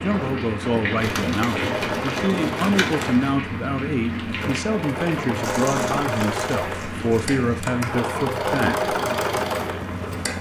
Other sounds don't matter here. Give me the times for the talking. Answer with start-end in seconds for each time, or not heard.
0.0-8.9.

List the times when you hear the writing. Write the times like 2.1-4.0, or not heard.
not heard.